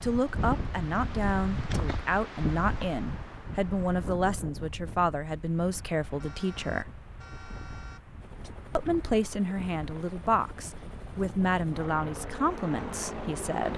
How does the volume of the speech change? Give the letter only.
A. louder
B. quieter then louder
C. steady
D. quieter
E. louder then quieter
C.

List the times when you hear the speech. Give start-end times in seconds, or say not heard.
0.0-7.0, 8.8-13.7.